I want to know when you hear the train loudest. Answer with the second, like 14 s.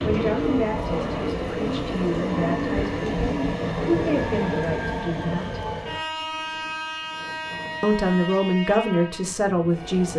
4 s.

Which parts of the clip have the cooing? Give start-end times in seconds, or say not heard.
0.0-3.5.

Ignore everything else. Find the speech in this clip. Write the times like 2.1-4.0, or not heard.
0.0-5.7, 7.8-10.1.